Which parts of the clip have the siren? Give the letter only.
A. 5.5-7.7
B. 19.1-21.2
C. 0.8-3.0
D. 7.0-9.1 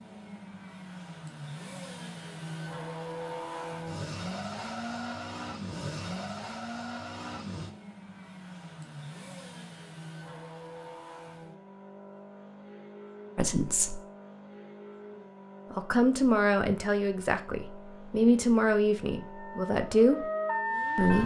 B.